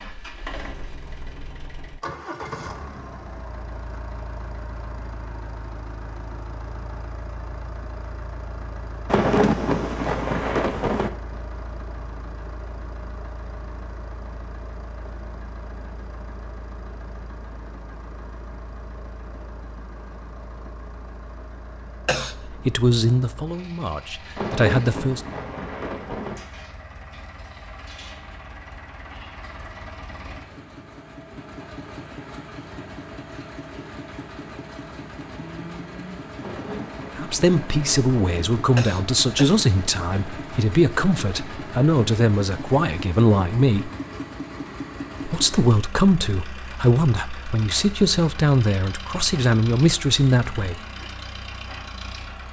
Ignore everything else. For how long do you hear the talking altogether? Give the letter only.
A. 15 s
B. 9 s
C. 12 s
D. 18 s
A.